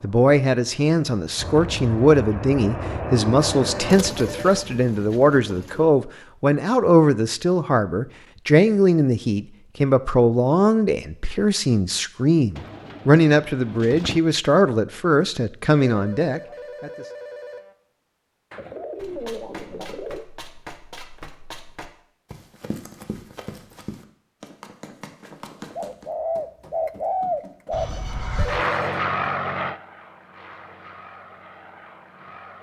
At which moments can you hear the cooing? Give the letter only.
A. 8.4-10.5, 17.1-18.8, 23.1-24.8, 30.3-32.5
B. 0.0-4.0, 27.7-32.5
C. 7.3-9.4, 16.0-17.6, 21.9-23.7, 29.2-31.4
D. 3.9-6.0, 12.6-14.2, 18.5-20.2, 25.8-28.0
D.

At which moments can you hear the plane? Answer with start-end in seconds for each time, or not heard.
0.0-4.0, 27.7-32.5.